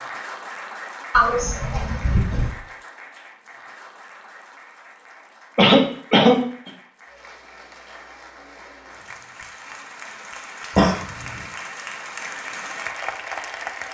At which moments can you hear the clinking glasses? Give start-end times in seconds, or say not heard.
not heard.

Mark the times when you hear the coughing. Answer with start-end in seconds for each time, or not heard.
1.1-2.5, 5.5-6.7, 10.8-11.4.